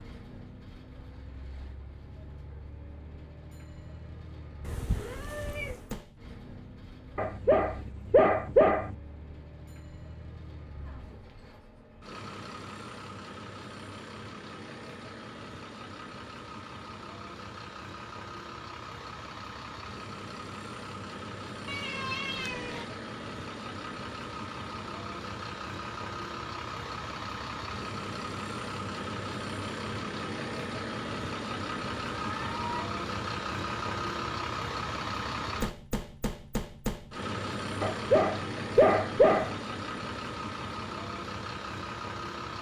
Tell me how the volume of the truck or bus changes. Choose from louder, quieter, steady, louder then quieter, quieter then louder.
louder.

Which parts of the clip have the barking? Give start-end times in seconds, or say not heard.
7.2-8.9, 37.8-39.6.